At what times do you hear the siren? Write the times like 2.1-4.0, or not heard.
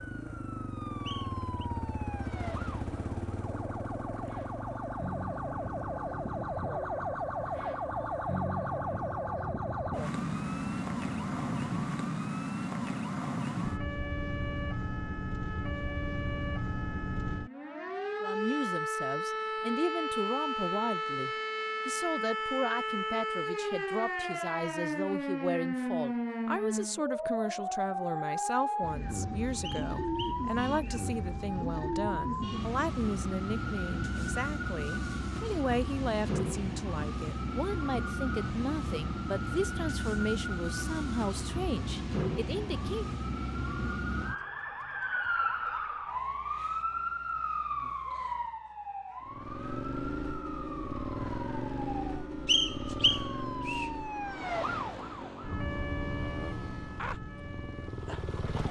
0.0-58.6.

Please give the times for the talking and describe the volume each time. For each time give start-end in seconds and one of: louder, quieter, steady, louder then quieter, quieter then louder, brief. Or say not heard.
18.2-43.0 steady.